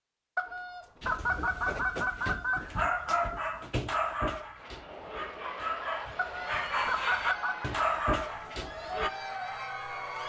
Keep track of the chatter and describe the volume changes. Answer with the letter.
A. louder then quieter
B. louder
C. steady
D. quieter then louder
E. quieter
B.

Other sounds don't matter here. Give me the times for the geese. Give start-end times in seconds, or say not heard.
0.3-2.6, 6.2-7.8.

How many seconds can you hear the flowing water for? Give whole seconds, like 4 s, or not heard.
not heard.